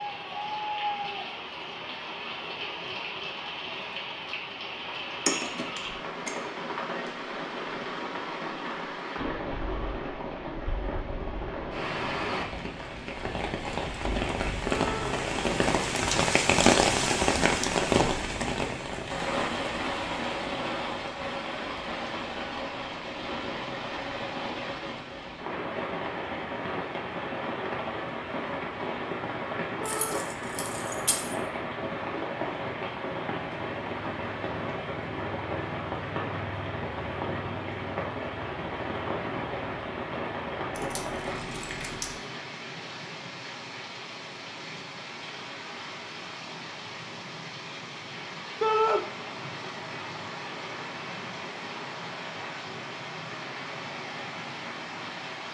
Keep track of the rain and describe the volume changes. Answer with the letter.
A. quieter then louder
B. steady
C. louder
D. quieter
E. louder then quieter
E.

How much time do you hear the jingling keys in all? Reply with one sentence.
You can hear the jingling keys for 4 seconds altogether.